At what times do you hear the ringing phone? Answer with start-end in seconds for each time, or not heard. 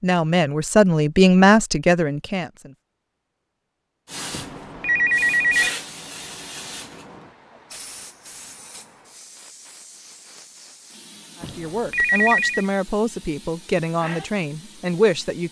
4.3-5.7, 11.4-12.7.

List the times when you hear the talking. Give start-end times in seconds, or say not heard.
0.0-2.8, 11.4-15.4.